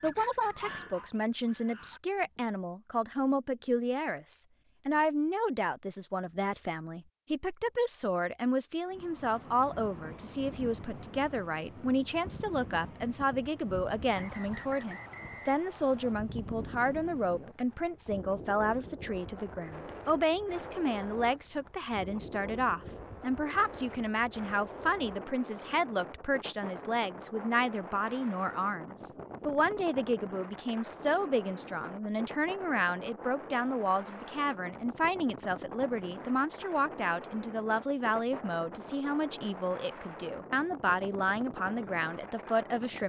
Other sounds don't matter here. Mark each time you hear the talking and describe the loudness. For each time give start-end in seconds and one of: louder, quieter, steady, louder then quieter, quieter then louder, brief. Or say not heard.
0.0-43.0 steady.